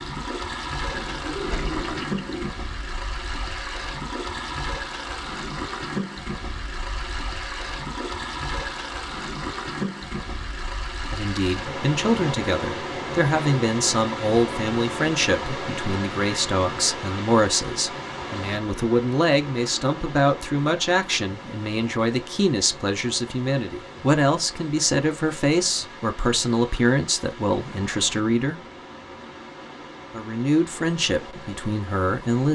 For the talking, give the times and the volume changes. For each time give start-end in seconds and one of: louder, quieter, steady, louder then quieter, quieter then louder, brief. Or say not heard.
11.1-28.6 steady
30.1-32.5 brief.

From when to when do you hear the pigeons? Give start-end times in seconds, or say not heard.
0.9-2.5.